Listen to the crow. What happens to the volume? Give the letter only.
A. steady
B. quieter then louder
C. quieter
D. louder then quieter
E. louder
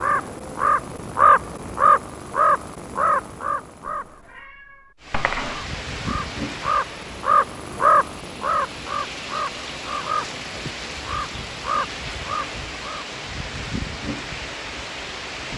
C.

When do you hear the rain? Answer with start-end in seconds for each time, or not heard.
5.0-15.5.